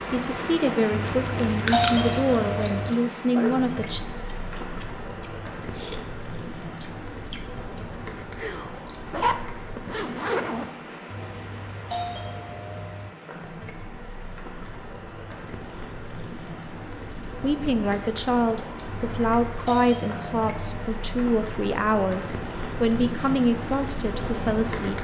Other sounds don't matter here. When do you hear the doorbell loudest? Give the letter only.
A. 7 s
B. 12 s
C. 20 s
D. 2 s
D.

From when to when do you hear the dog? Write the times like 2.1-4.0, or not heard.
not heard.